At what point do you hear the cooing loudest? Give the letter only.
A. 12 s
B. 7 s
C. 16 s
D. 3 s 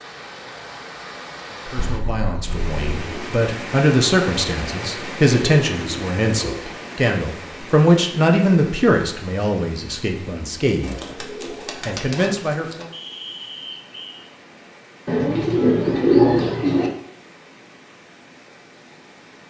C.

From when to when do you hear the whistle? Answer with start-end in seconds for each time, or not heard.
12.9-14.2.